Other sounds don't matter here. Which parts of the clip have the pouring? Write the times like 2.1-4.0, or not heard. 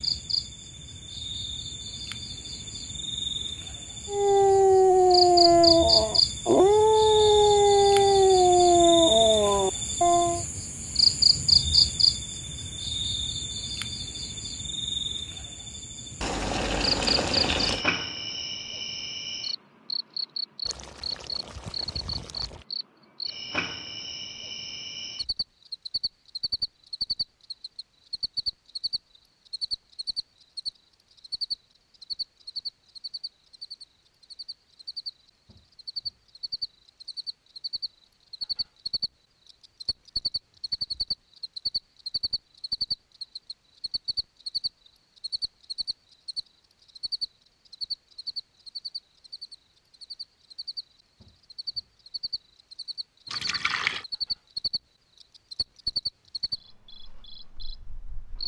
16.2-17.9, 20.6-22.6, 53.3-54.0.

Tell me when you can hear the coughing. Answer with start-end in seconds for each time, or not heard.
not heard.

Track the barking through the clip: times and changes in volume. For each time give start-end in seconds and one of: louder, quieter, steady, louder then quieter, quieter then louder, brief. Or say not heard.
4.0-10.4 steady.